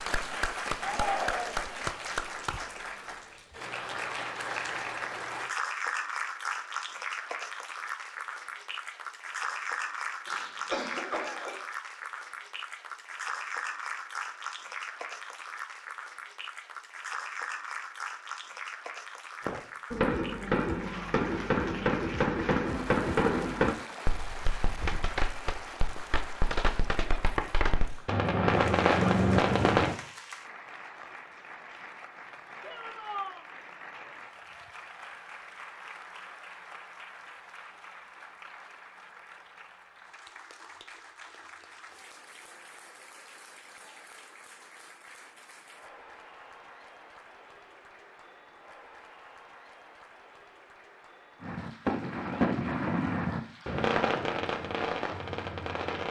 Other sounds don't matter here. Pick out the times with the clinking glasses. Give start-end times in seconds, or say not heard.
not heard.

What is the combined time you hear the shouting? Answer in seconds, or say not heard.
2 s.